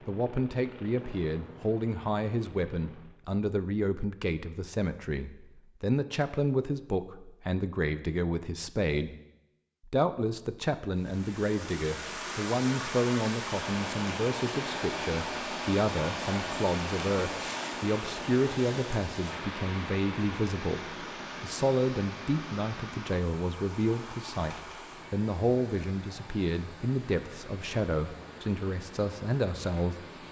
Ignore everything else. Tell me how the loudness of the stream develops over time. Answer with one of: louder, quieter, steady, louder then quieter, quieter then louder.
quieter.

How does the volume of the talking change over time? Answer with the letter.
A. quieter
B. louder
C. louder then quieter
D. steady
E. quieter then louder
D.